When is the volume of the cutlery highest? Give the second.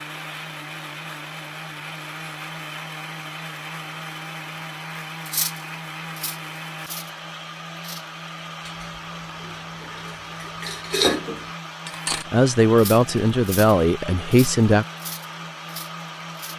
11 s.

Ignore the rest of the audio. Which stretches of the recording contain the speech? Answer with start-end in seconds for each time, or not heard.
12.3-14.8.